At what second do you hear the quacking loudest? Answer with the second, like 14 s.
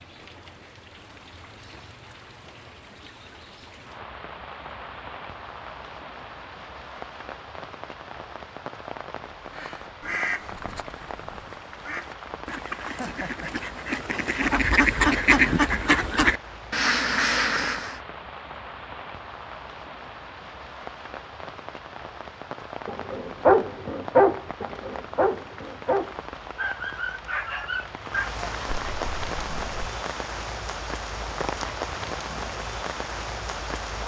15 s.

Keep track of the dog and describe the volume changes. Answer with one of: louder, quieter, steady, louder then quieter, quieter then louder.
quieter.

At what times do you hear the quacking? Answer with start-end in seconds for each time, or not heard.
9.5-17.9.